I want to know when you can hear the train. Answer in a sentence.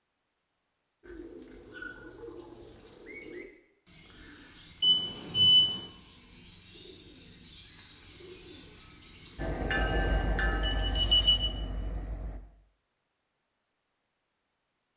The train can be heard from 9.3 to 12.4 s.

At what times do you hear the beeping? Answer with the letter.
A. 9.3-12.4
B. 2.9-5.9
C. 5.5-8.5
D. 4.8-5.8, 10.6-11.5
D.